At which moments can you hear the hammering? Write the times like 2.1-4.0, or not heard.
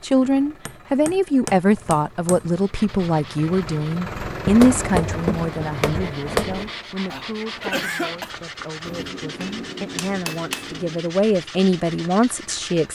0.2-2.4, 4.4-6.7, 8.8-11.1.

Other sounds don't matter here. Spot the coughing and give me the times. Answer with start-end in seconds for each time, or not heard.
7.0-8.3.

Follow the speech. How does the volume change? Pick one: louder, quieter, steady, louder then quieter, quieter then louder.
quieter then louder.